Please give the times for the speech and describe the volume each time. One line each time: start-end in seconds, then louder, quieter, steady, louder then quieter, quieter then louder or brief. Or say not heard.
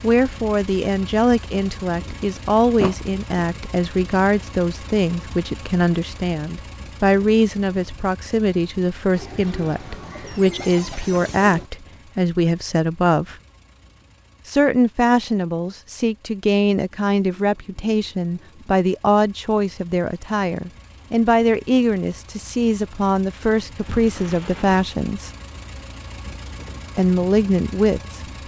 0.0-13.3 steady
14.4-25.3 steady
26.9-28.2 brief.